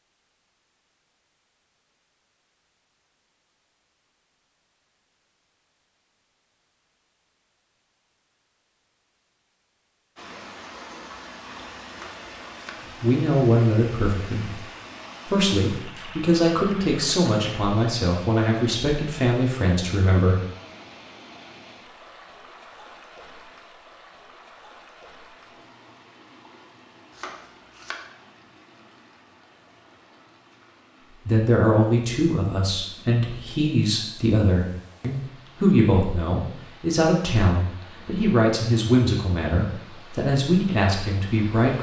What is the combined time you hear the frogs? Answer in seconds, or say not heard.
not heard.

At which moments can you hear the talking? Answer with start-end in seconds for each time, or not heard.
13.0-14.6, 15.2-20.4, 31.2-41.7.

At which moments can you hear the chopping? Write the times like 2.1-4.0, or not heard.
11.9-12.7, 27.1-27.9.